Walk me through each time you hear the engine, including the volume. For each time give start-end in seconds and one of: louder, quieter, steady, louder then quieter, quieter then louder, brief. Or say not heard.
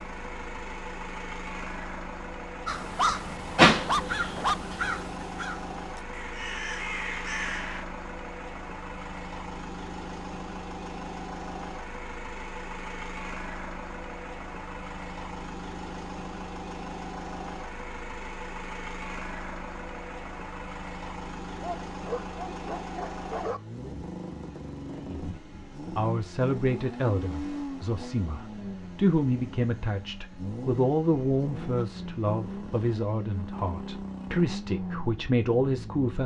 0.0-36.2 steady.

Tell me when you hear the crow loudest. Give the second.
4 s.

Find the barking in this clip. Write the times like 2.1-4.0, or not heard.
3.0-4.5, 21.6-23.6.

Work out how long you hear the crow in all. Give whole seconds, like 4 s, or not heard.
5 s.